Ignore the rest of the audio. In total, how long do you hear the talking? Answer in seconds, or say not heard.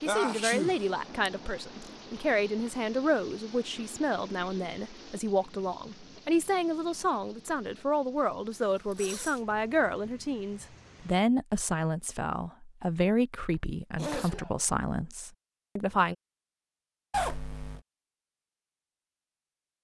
16 s.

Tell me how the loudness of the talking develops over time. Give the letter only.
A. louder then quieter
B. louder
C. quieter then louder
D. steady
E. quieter
D.